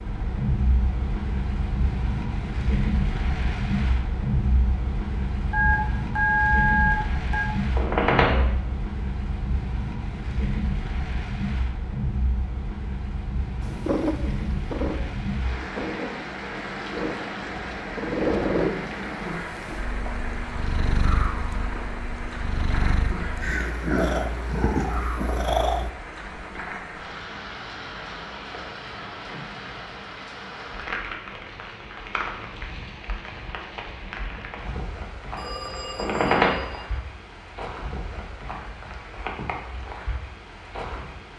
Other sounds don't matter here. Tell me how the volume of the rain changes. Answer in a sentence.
The volume of the rain goes down.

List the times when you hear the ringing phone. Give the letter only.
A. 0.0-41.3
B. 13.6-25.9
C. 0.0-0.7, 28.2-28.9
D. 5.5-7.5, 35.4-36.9
D.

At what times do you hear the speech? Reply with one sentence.
You can't hear the speech here.